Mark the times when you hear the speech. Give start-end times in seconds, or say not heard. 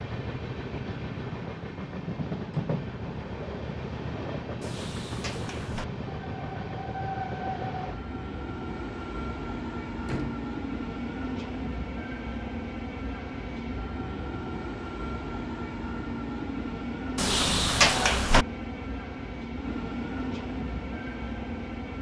not heard.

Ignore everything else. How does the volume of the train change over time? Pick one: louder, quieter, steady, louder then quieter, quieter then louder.
steady.